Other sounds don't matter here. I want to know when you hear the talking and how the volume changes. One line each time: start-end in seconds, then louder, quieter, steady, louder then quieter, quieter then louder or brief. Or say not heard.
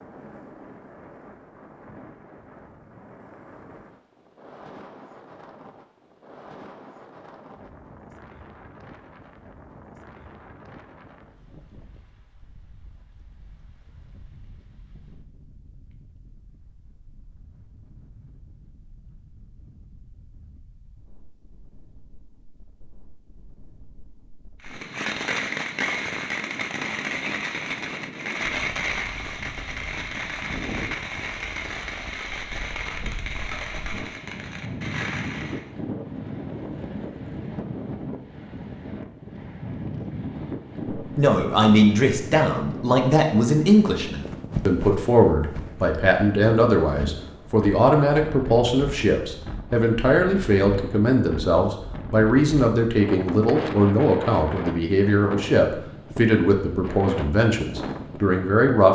41.1-58.9 steady.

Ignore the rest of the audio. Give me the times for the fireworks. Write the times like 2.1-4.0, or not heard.
24.6-35.7.